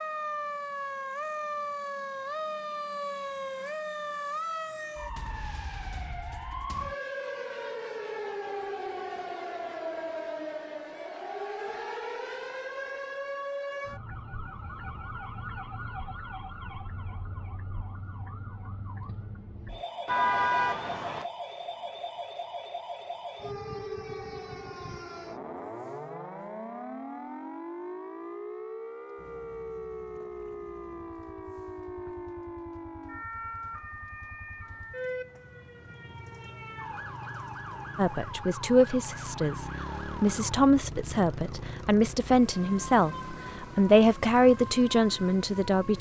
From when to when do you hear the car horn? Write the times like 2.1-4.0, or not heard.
20.1-21.2.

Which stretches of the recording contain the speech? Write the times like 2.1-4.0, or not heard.
38.0-45.9.